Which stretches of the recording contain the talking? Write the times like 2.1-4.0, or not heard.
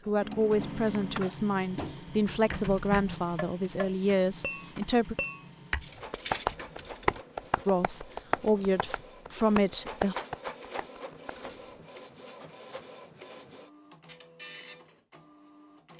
0.1-5.2, 7.7-10.2.